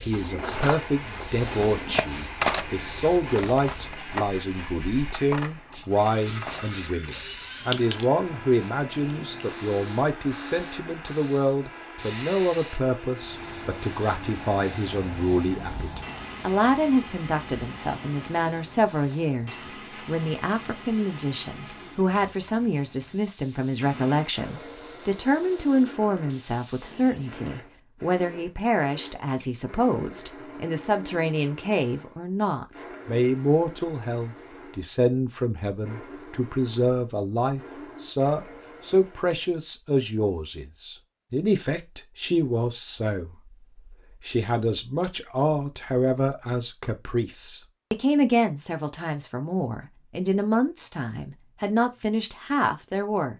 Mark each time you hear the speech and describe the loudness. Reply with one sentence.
The speech can be heard from 0.0 to 53.3 s, at a steady volume.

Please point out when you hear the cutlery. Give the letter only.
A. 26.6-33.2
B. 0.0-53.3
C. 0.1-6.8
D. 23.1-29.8
C.